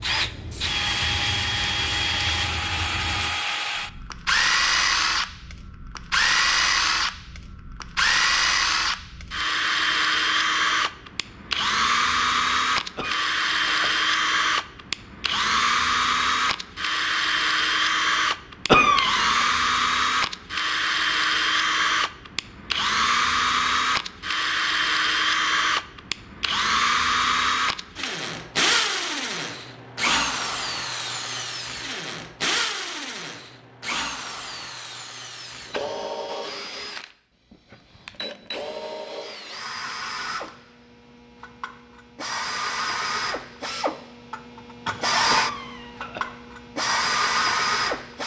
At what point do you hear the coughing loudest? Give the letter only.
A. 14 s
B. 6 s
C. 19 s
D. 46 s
C.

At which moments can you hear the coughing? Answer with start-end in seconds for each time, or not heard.
12.9-14.0, 18.6-19.4, 45.2-46.3.